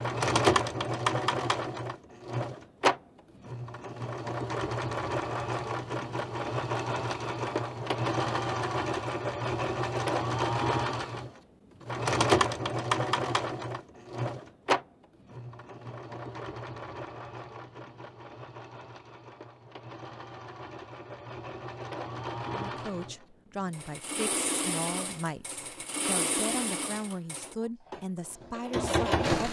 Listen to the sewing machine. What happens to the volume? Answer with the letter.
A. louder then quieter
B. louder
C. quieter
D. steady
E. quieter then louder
E.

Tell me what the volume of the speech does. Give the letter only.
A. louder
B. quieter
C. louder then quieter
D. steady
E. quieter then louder
D.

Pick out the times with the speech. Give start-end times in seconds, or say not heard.
22.5-29.4.